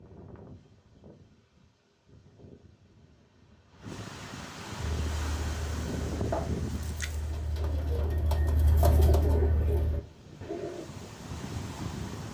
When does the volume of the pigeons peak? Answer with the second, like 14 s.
9 s.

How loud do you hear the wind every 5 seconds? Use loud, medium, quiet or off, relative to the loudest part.
medium, loud, loud.